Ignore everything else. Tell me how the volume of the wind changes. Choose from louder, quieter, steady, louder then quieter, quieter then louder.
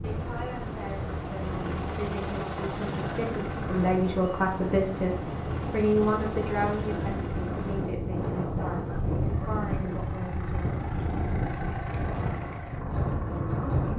louder.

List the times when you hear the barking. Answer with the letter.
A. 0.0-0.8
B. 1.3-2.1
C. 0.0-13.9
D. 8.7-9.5
D.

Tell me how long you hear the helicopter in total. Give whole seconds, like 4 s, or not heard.
14 s.